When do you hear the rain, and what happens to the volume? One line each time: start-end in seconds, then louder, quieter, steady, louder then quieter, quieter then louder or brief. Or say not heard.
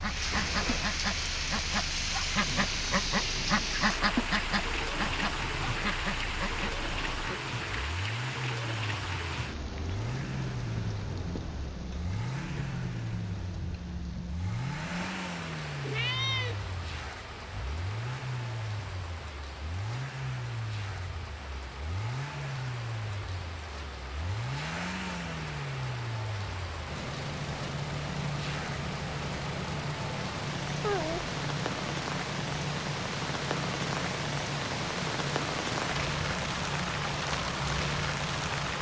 0.0-38.7 quieter then louder.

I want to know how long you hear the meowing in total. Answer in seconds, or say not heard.
2 s.